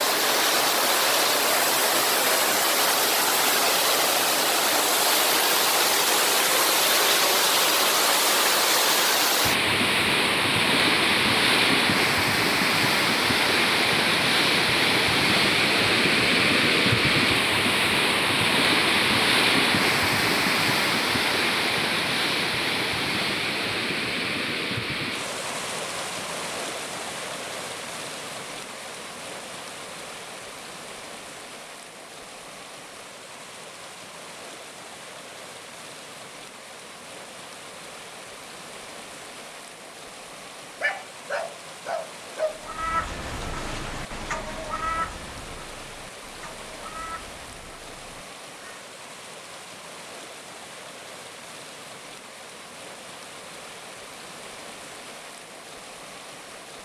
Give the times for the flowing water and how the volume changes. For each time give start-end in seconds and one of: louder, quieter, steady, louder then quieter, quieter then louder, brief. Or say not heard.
0.0-56.7 quieter.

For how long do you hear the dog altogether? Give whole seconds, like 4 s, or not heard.
2 s.